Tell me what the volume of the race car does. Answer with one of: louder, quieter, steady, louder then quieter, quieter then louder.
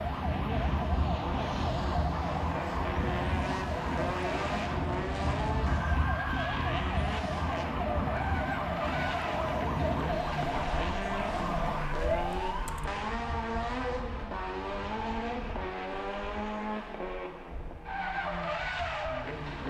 steady.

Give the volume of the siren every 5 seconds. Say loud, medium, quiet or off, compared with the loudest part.
loud, loud, loud, off.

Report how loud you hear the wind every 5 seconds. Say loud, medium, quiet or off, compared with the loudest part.
loud, loud, medium, quiet.